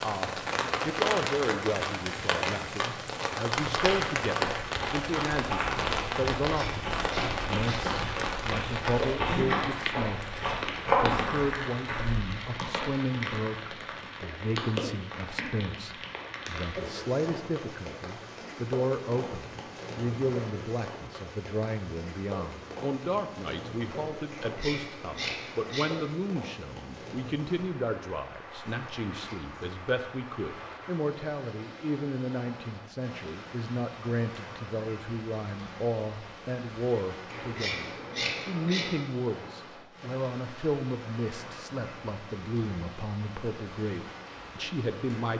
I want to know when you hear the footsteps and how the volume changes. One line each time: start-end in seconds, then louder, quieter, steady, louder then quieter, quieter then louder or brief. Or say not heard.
3.7-12.2 louder.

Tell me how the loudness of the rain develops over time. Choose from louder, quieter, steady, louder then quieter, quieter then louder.
quieter.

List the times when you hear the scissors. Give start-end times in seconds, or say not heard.
6.5-7.8, 24.3-25.9, 37.3-38.9.